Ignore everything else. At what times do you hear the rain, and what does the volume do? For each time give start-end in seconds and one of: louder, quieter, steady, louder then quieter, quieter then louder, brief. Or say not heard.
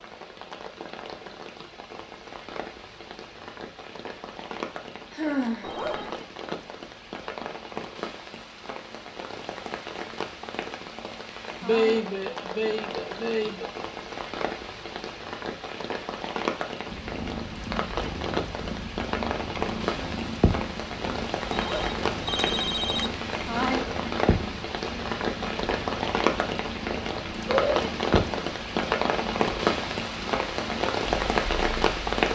0.0-32.3 louder.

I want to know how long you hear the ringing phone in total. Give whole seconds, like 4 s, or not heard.
2 s.